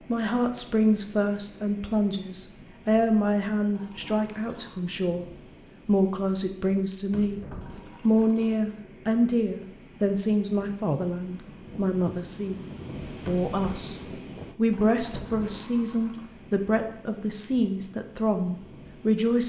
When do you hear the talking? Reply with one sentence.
You can hear the talking from 0.1 to 5.2 s, from 5.8 to 7.4 s, from 8.0 to 12.6 s, from 13.2 to 13.9 s and from 14.6 to 19.4 s.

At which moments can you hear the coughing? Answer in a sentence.
The coughing can't be heard in this clip.